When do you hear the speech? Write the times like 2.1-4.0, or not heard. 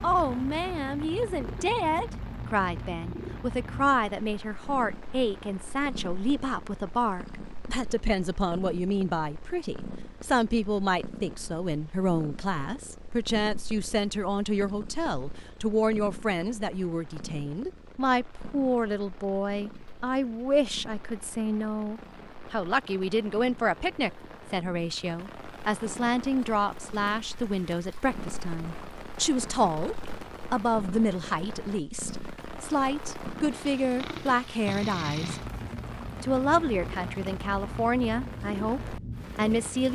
0.0-35.4, 36.2-39.9.